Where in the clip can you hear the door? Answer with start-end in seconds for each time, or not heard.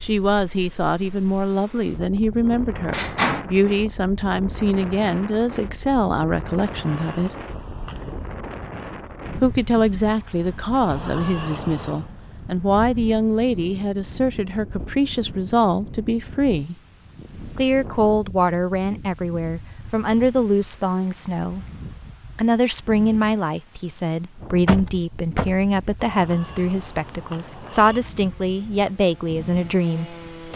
2.4-3.5, 24.6-25.7.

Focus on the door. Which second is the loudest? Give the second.
3 s.